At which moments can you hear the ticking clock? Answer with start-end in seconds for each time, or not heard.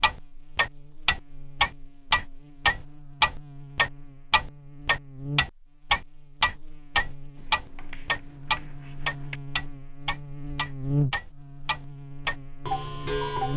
0.0-13.5.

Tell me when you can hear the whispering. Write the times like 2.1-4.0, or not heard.
not heard.